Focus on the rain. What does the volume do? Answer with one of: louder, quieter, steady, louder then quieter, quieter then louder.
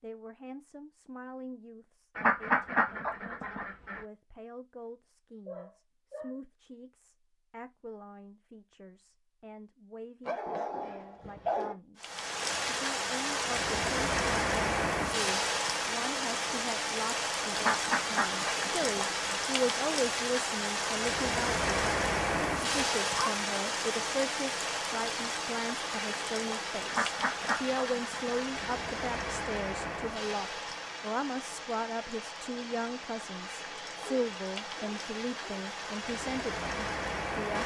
quieter.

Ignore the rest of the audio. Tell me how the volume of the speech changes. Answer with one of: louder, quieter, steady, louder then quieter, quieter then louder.
louder.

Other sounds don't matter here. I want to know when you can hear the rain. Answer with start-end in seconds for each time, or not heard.
12.0-37.6.